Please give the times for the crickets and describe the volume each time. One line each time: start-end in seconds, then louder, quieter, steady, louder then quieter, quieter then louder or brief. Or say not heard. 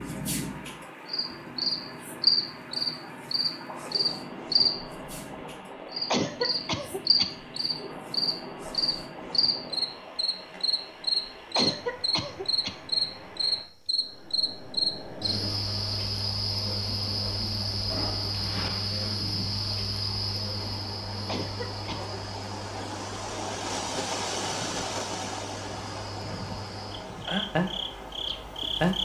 0.0-29.0 quieter.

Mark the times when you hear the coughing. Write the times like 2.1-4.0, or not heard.
6.1-7.3, 11.6-12.8, 21.2-22.2.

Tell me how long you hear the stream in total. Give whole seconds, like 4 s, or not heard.
29 s.